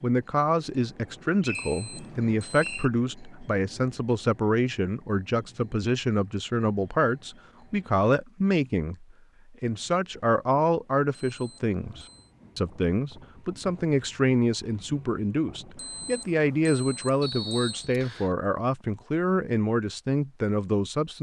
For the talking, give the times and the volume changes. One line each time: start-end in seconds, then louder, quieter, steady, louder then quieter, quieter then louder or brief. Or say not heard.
0.0-21.1 steady.